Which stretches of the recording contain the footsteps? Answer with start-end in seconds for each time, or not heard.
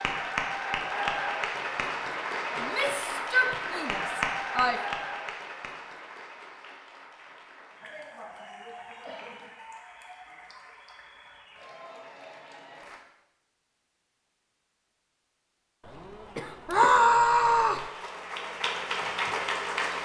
not heard.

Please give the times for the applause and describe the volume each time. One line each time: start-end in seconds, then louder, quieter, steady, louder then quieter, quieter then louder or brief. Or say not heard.
0.0-13.1 quieter
17.4-20.0 brief.